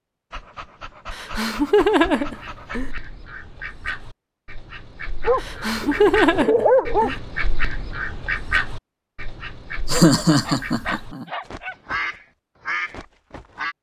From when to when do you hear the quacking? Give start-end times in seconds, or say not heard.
1.9-13.7.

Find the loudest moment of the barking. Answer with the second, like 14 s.
7 s.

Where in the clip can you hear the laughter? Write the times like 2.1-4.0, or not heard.
1.1-2.9, 5.4-7.2, 9.8-11.2.